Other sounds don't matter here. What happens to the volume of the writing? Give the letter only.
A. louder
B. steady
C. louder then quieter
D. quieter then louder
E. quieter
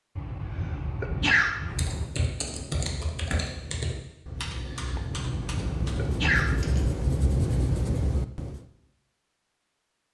A.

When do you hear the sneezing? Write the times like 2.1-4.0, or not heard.
0.1-2.1, 5.3-6.7.